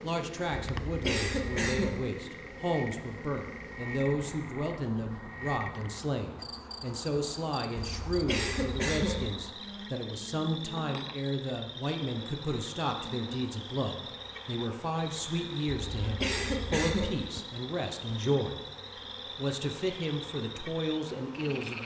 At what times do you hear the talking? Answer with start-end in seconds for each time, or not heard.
0.0-18.6, 19.4-21.8.